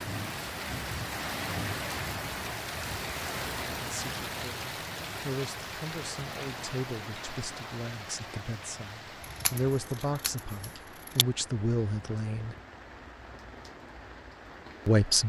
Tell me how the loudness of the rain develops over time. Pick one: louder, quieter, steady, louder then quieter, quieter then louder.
quieter.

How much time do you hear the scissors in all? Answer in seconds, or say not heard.
2 s.